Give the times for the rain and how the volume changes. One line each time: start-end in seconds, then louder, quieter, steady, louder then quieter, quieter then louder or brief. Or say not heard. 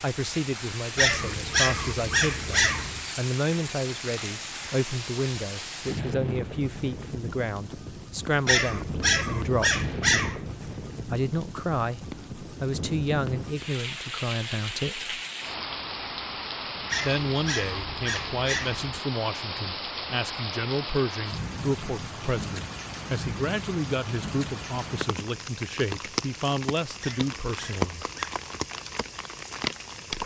0.0-30.2 steady.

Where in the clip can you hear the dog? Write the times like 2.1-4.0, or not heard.
0.9-3.1, 8.4-10.5, 16.9-18.9, 27.0-28.3.